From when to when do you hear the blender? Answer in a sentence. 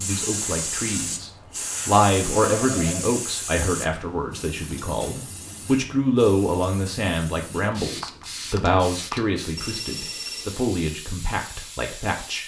You can't hear the blender here.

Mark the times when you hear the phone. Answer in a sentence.
The phone can be heard from 2.5 to 3.1 s and from 9.6 to 10.6 s.